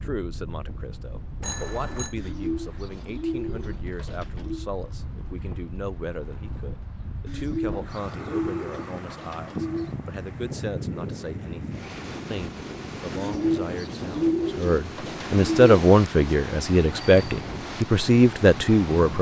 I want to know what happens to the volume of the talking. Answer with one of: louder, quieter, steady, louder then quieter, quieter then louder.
louder.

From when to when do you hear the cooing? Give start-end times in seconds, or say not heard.
2.1-4.7, 7.2-9.9, 13.2-15.8.